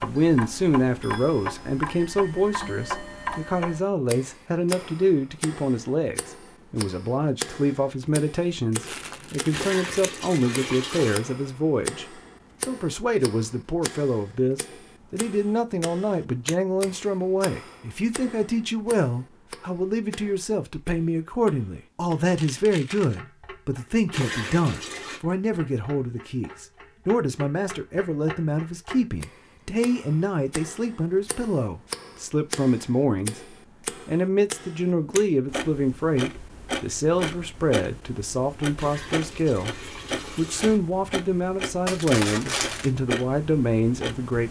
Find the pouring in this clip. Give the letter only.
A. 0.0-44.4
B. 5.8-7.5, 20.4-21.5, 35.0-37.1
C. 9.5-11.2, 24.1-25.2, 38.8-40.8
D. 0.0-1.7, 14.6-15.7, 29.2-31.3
C.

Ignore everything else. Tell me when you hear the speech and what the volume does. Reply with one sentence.
The speech can be heard from 0.0 to 44.4 s, at a steady volume.